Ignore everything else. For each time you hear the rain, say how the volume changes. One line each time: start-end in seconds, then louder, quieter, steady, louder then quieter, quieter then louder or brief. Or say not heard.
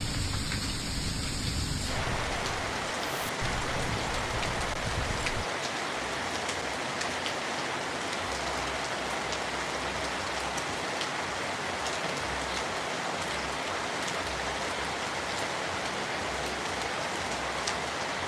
0.0-18.2 steady.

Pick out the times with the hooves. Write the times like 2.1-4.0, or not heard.
0.0-5.5.